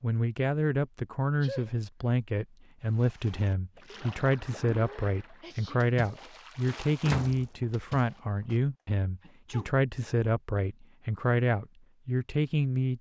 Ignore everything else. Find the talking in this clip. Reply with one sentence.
You can hear the talking from 0.0 to 12.9 s.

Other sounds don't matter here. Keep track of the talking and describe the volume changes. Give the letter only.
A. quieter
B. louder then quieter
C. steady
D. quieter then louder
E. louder
C.